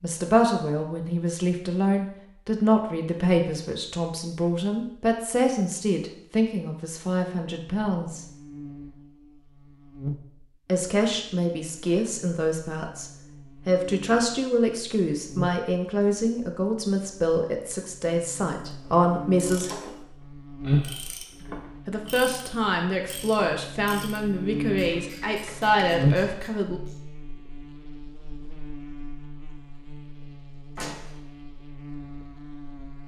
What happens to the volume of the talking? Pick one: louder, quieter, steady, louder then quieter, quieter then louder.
steady.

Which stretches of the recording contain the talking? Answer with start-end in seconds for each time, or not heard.
0.0-8.2, 10.7-19.7, 21.9-26.8.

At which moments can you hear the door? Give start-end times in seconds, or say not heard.
30.8-31.2.